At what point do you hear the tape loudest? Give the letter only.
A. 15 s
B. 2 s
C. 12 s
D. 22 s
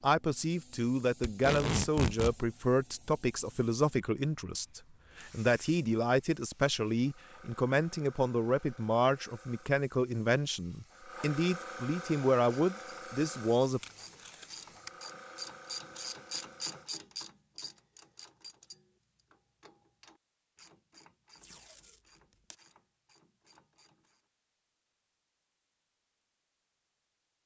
B.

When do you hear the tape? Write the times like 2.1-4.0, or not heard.
1.2-2.4, 13.8-15.0, 21.4-22.6.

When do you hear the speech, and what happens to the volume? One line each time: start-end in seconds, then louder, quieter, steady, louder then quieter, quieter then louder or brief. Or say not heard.
0.0-13.8 steady.